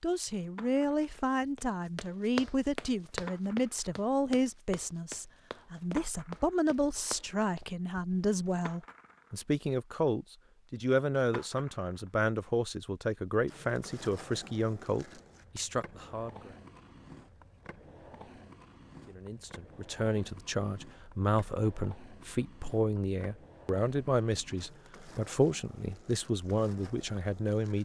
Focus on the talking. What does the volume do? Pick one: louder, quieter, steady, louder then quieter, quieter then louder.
steady.